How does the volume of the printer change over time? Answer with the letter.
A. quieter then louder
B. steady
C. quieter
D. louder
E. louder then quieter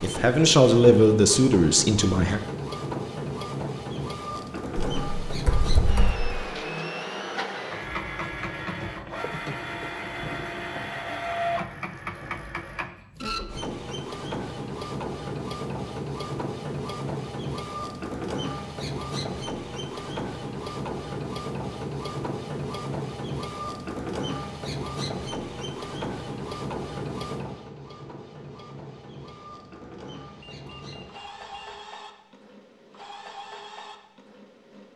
C.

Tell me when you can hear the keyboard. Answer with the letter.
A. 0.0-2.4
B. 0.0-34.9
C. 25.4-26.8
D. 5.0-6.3
D.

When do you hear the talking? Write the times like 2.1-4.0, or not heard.
0.0-2.4.